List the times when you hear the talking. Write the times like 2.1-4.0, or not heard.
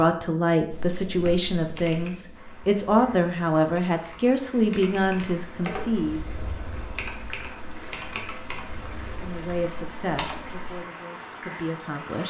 0.0-6.2, 9.1-12.2.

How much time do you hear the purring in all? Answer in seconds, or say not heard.
not heard.